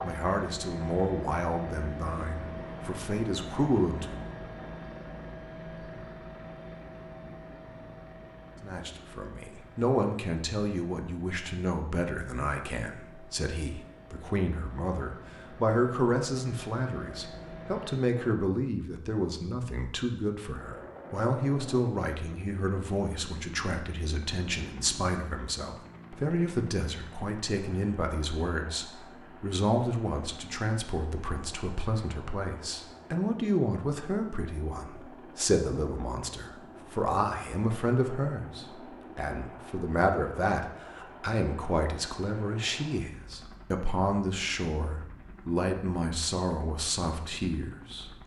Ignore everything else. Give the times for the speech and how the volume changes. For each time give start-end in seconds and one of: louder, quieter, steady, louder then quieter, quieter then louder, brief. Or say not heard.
0.0-4.2 quieter then louder
8.6-48.1 steady.